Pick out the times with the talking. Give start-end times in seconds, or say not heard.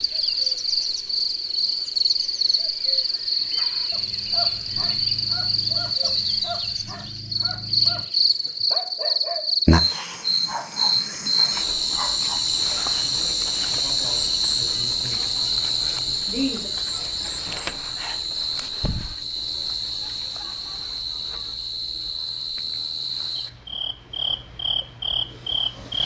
12.9-15.3, 16.2-16.7.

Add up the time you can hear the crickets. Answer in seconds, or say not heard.
26 s.